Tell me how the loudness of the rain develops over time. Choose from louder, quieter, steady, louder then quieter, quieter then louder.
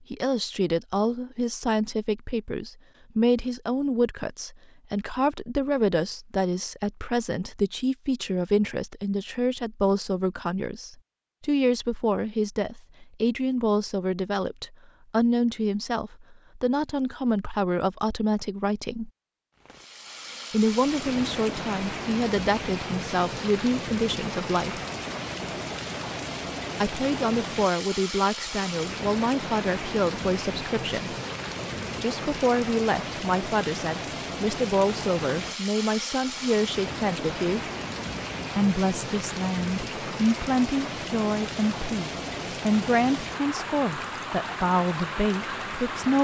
steady.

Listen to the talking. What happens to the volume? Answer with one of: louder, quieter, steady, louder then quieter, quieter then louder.
steady.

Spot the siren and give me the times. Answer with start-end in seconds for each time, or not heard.
not heard.